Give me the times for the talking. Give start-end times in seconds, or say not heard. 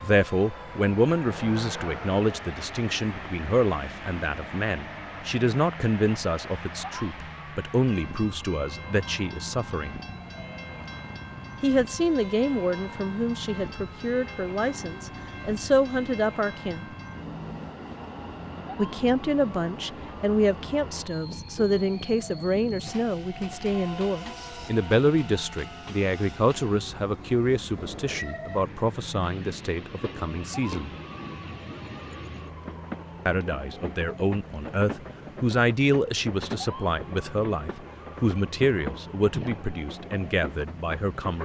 0.0-9.9, 11.6-16.9, 18.8-30.9, 33.2-41.4.